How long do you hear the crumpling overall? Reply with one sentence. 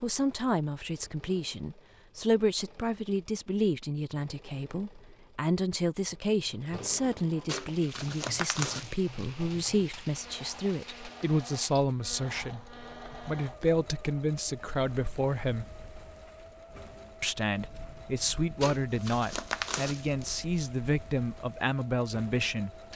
The crumpling can be heard for 3 seconds in total.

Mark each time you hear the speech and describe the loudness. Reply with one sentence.
You can hear the speech from 0.0 to 15.7 s, at a steady volume; and from 17.2 to 22.7 s, at a steady volume.